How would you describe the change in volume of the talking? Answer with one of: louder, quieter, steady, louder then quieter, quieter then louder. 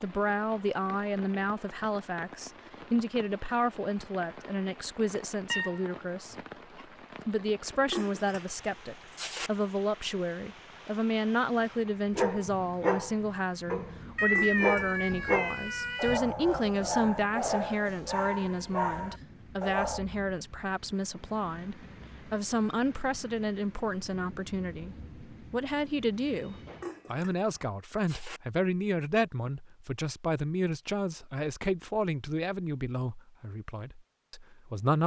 steady.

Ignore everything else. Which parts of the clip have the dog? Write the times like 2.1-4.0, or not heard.
11.8-20.1.